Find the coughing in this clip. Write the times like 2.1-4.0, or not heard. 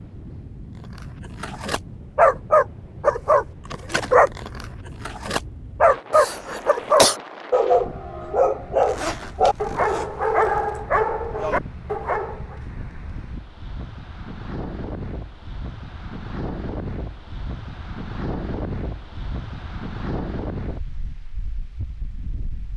6.1-7.2.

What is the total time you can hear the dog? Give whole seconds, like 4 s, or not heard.
11 s.